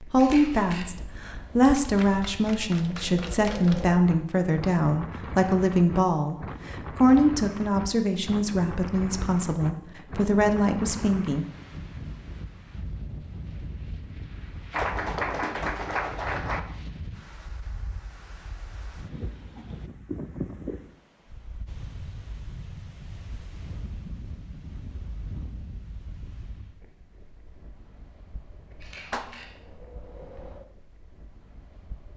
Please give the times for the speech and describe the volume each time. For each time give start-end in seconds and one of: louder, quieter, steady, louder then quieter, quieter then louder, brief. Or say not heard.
0.0-11.4 steady.